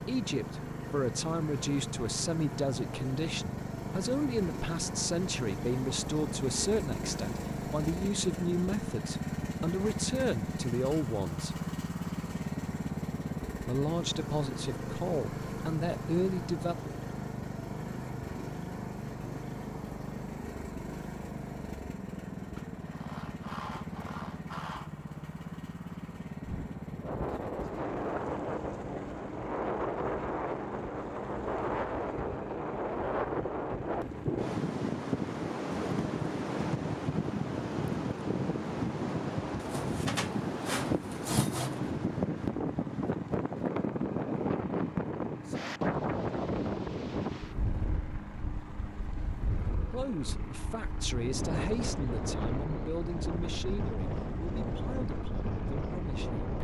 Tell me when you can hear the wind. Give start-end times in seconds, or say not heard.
26.4-56.5.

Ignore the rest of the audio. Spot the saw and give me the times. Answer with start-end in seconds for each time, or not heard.
22.6-25.0, 39.5-41.8.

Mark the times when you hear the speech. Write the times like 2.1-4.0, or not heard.
0.1-11.6, 13.6-16.8, 49.9-56.5.